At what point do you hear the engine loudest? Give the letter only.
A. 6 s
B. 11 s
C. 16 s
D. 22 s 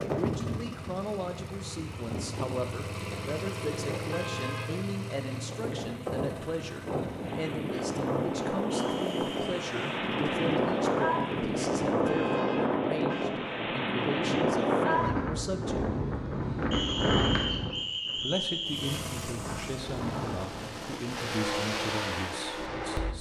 D.